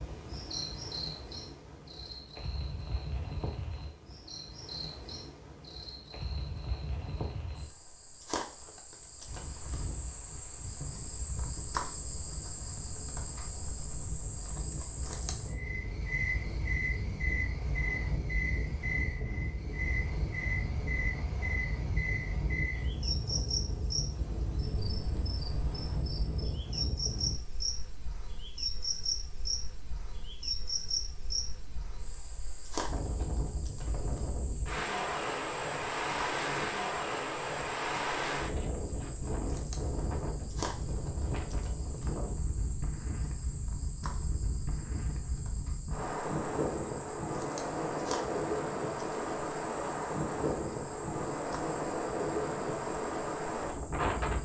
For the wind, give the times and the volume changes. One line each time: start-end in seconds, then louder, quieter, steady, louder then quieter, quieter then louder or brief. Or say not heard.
9.2-54.3 louder.